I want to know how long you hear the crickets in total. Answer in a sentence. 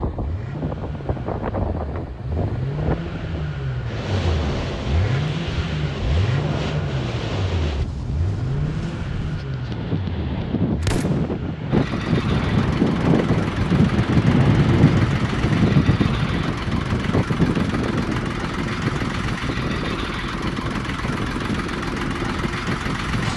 You can't hear the crickets here.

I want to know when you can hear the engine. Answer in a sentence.
The engine can be heard from 0.1 to 23.3 s.